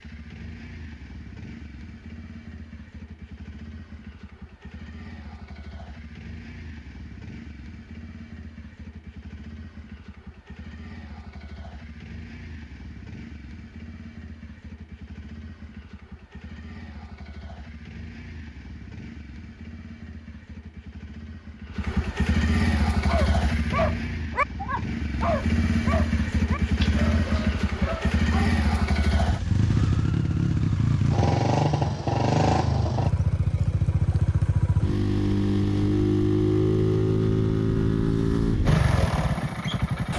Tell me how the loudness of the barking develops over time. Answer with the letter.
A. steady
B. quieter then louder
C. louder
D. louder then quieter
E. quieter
E.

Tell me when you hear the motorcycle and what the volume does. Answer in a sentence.
The motorcycle can be heard from 0.0 to 40.1 s, getting louder.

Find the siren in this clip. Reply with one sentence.
You can't hear the siren here.